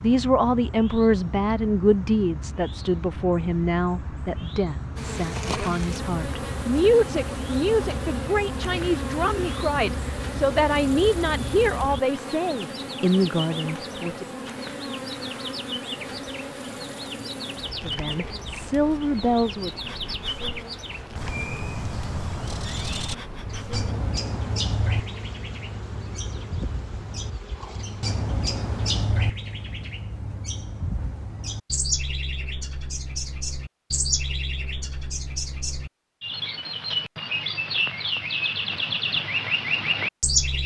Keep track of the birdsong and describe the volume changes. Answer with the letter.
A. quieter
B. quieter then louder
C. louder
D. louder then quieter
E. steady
C.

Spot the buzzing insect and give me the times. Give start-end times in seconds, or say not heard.
5.0-29.1.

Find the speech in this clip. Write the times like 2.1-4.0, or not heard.
0.0-14.2, 17.8-19.7.